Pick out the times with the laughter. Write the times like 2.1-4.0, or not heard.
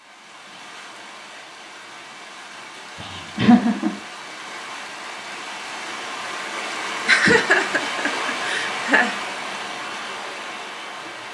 3.0-4.0, 7.0-9.2.